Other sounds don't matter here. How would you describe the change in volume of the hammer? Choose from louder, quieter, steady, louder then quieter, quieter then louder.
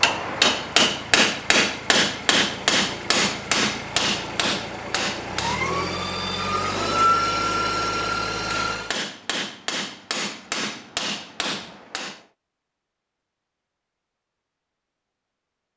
quieter.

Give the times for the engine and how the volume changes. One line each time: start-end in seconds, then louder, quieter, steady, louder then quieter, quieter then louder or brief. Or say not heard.
0.0-9.0 louder.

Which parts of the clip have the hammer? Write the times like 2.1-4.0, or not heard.
0.0-5.8, 8.3-12.2.